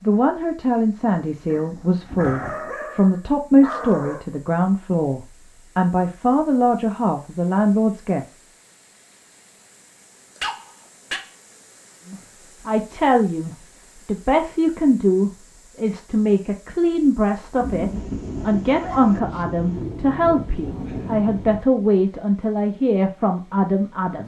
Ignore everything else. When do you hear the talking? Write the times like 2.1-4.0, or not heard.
0.0-8.3, 12.1-24.2.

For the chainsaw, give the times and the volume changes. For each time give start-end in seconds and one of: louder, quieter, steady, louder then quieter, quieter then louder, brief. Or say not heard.
not heard.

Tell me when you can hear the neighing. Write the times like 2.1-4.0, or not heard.
not heard.